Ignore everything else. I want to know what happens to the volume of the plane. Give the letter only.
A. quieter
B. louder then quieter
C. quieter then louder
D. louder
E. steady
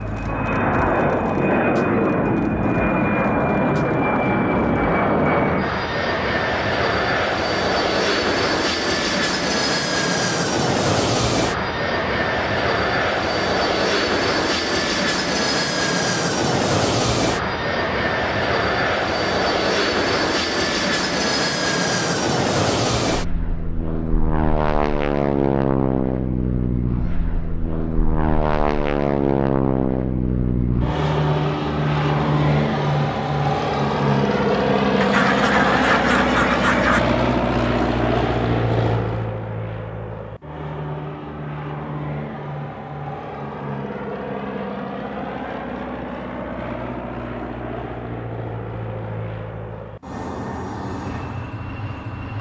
A.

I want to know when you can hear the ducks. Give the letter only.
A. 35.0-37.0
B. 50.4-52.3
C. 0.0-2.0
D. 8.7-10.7
A.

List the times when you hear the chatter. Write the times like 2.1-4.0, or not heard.
not heard.